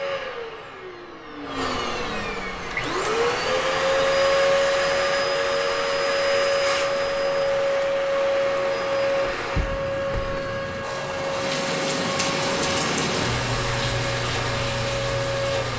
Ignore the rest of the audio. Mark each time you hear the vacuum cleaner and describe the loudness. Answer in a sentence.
The vacuum cleaner can be heard from 0.0 to 15.7 s, getting louder then quieter.